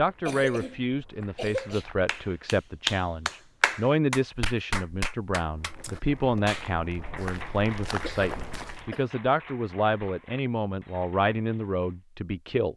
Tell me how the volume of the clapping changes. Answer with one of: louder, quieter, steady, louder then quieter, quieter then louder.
quieter.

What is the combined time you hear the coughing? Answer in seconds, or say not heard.
3 s.